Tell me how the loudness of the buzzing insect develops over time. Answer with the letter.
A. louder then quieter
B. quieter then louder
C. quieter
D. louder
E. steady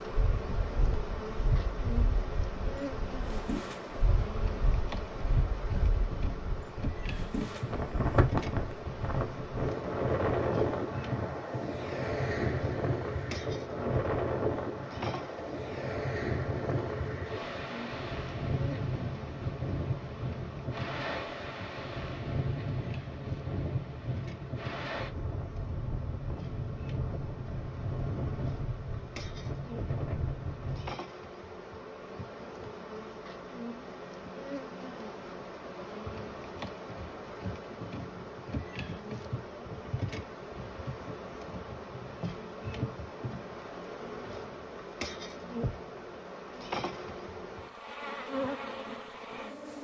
B.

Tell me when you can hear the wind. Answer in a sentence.
The wind can be heard from 0.0 to 31.0 s.